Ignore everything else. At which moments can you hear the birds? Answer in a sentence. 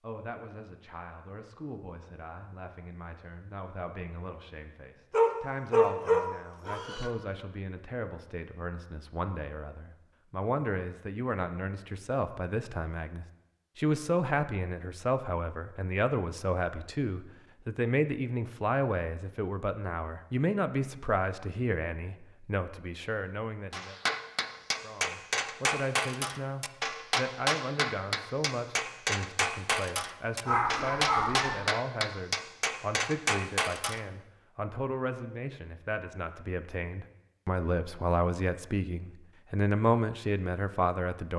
You can't hear the birds here.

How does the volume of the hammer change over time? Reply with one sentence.
The volume of the hammer stays about the same.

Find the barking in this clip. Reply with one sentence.
You can hear the barking from 5.1 to 7.1 s and from 30.4 to 31.6 s.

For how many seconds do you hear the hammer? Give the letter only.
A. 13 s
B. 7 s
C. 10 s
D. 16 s
C.